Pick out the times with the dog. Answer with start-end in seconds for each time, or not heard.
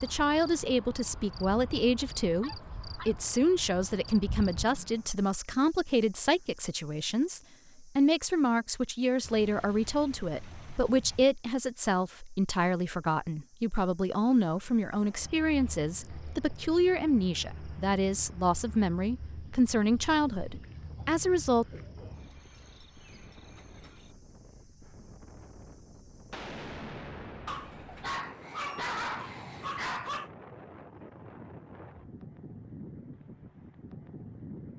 2.4-3.1, 27.4-30.3.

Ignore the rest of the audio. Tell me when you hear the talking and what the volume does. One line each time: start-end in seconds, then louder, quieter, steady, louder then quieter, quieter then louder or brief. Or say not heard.
0.0-21.6 steady.